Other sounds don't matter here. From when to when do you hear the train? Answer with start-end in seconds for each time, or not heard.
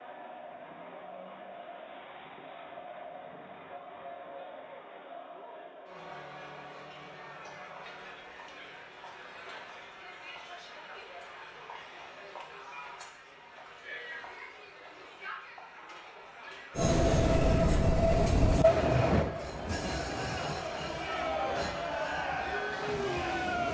16.8-23.6.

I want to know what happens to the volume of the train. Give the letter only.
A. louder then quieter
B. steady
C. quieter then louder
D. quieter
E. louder
D.